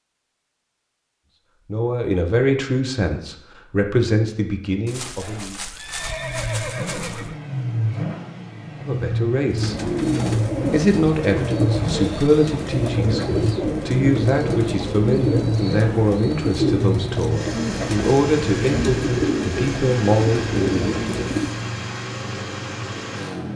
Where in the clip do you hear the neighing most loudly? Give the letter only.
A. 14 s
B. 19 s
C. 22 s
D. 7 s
D.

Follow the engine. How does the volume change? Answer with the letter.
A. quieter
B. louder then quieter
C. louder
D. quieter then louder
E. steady
E.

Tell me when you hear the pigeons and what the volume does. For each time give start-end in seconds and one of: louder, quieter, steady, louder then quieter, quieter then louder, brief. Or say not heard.
9.5-21.6 steady.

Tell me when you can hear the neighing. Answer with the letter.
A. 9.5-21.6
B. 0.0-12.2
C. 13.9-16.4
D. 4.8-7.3
D.